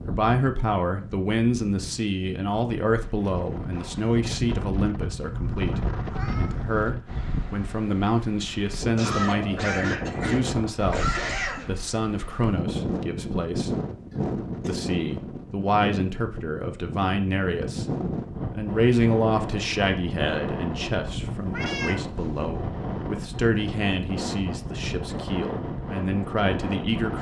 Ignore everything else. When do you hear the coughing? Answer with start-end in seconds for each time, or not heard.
8.9-11.7, 14.1-14.8.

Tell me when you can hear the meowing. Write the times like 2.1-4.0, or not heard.
5.3-6.6, 21.3-22.6.